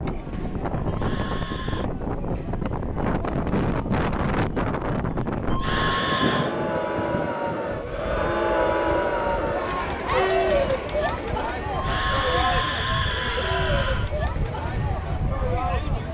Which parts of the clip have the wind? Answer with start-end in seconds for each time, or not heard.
0.0-16.0.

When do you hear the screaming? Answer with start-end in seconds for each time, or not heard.
0.8-1.9, 5.5-6.5, 11.7-14.1.